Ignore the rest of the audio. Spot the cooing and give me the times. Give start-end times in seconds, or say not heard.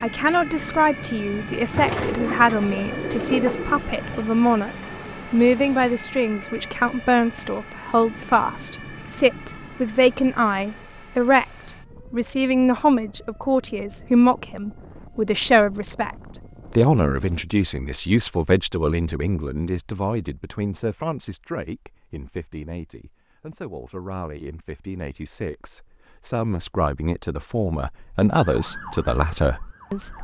1.7-4.2.